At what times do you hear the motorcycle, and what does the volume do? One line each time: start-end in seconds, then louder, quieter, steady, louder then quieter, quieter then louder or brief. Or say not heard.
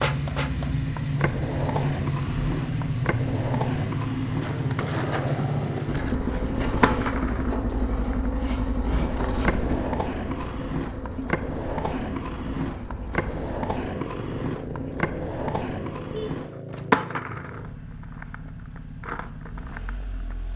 0.0-20.5 quieter.